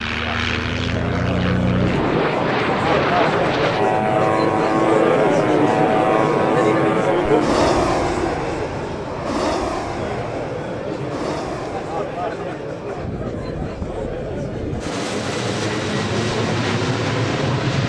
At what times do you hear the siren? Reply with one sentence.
The siren can't be heard in this clip.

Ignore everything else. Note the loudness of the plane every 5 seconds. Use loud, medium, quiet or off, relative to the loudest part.
loud, loud, medium, loud.